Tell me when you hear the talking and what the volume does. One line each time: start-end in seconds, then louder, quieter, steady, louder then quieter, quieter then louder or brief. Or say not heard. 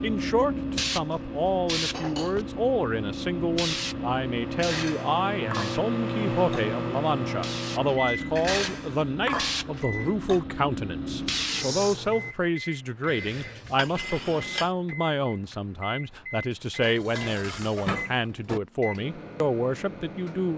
0.0-20.5 steady.